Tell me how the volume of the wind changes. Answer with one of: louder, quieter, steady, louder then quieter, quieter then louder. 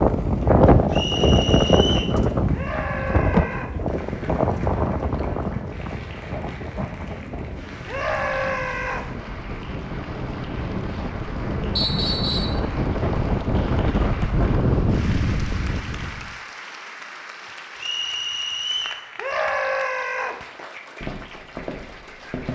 quieter then louder.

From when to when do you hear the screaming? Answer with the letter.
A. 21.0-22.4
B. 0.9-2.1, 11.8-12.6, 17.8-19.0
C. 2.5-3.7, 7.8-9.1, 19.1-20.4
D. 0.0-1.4
C.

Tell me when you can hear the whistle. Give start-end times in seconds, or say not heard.
0.9-2.1, 11.8-12.6, 17.8-19.0.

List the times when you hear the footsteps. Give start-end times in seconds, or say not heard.
21.0-22.4.